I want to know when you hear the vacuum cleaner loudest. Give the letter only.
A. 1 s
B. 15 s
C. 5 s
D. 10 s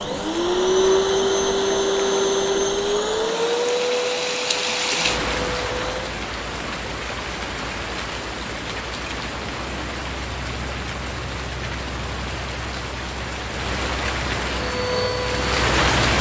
A.